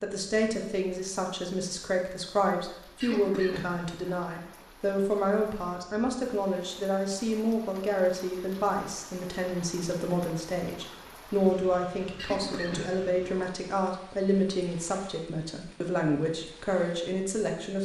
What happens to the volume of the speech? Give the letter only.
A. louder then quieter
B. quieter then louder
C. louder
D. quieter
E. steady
E.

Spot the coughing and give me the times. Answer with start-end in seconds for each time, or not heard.
3.0-4.3, 12.2-13.5.